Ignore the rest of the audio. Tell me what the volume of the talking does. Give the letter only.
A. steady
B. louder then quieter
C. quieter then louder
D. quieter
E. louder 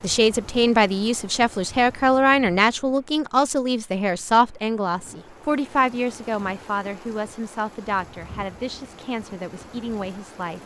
D.